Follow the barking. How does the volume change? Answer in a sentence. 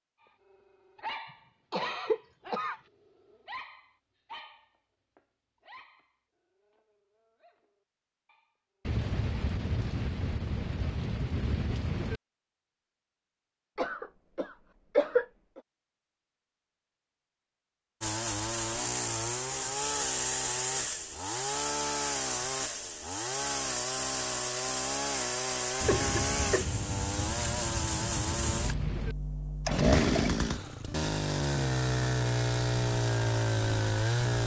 The loudness of the barking goes down.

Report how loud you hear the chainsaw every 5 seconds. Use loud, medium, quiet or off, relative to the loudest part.
off, off, off, loud, loud, loud, loud.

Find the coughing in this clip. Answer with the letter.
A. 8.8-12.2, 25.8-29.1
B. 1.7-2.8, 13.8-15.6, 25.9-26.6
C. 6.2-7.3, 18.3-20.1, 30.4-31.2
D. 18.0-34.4
B.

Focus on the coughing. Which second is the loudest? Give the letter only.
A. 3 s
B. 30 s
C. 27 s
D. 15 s
D.